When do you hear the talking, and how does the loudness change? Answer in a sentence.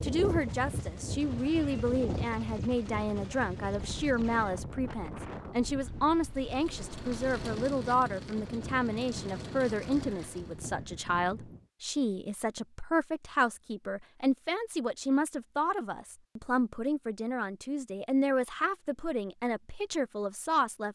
You can hear the talking from 0.0 to 20.9 s, at a steady volume.